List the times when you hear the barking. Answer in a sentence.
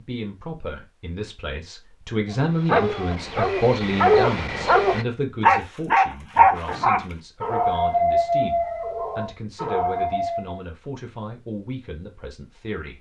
The barking can be heard from 2.3 to 10.6 s.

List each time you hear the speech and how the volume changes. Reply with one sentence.
The speech can be heard from 0.0 to 12.9 s, getting quieter.